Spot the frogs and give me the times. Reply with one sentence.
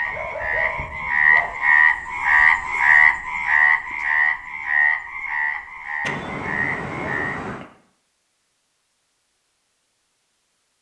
You can hear the frogs from 0.0 to 7.4 s.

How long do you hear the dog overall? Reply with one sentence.
The dog can be heard for 3 seconds in total.